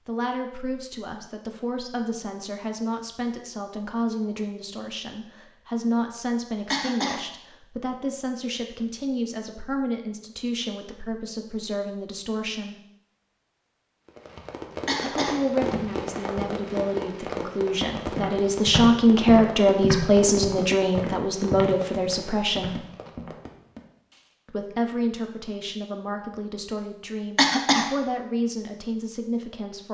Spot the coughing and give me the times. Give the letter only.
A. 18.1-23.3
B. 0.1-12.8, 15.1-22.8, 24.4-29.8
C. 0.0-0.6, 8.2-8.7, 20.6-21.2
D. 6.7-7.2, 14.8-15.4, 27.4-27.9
D.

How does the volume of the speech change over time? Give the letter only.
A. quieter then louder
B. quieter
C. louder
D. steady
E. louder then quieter
E.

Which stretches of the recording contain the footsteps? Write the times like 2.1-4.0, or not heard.
18.1-23.3.